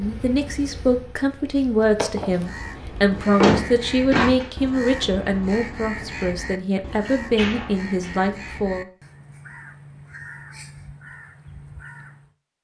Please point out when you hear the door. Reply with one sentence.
The door can be heard from 3.1 to 4.5 s and from 6.5 to 8.2 s.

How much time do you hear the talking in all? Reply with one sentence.
The talking can be heard for 9 seconds in total.